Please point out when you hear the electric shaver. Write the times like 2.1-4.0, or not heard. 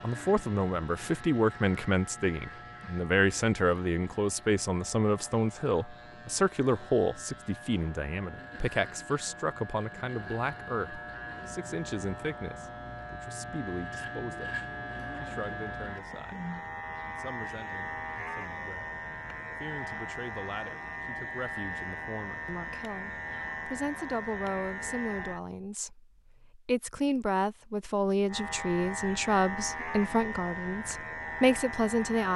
0.0-25.4, 28.2-32.3.